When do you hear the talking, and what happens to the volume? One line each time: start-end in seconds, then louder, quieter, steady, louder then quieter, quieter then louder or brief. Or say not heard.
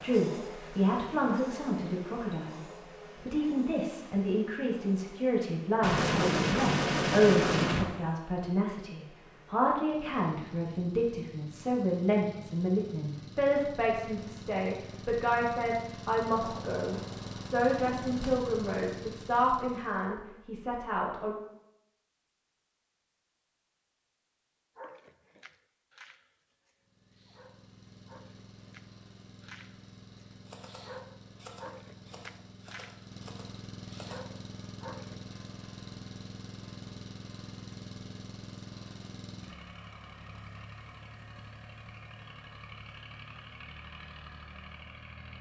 0.0-21.4 steady.